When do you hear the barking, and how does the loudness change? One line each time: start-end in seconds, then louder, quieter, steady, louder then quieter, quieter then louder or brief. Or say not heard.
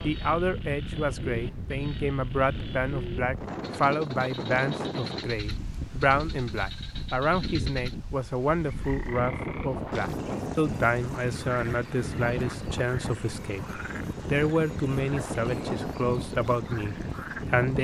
not heard.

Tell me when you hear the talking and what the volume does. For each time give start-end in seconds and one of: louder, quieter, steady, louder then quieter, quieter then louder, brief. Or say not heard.
0.0-17.8 steady.